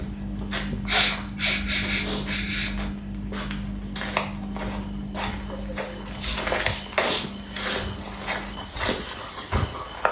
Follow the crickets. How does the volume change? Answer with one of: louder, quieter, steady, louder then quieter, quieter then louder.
quieter.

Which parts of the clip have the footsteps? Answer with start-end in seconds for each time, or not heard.
0.0-10.0.